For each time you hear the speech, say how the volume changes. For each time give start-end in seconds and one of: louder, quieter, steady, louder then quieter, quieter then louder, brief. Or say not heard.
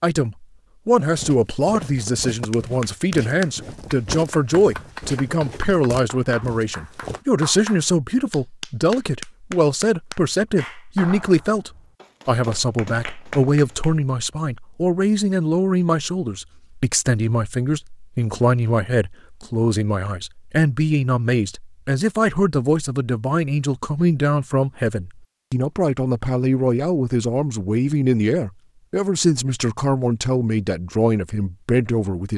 0.0-32.3 steady.